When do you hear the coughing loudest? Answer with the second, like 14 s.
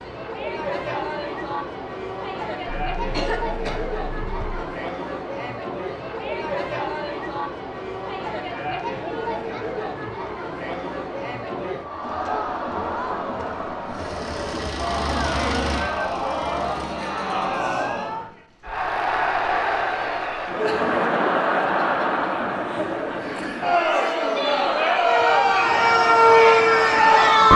3 s.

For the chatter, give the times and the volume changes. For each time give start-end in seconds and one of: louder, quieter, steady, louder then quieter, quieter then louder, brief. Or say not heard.
0.0-27.5 louder.